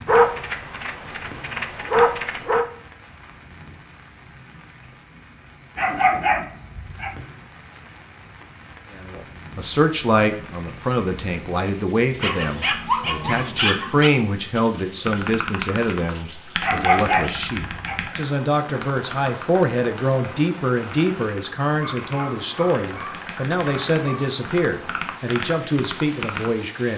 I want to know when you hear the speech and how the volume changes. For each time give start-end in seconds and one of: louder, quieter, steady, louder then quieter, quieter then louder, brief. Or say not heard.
8.9-26.9 steady.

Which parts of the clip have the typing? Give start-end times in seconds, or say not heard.
15.1-26.5.